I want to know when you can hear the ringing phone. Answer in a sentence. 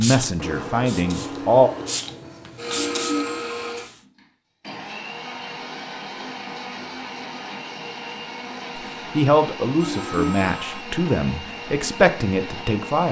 You can hear the ringing phone from 2.7 to 3.8 s and from 9.8 to 10.8 s.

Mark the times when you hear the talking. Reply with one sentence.
You can hear the talking from 0.0 to 1.7 s and from 9.2 to 13.0 s.